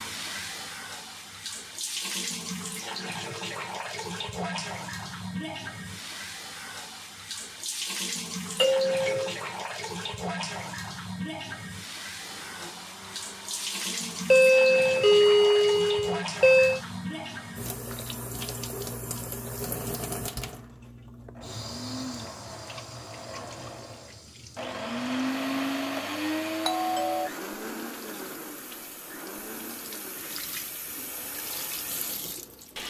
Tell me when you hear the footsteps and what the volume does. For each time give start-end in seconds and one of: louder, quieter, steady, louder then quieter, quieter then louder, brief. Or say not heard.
not heard.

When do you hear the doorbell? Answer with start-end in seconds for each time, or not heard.
8.6-9.3, 14.3-16.8, 26.6-27.3.